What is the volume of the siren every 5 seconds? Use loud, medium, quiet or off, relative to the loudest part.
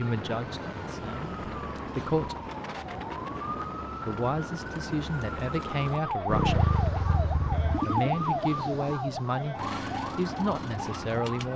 medium, loud, loud.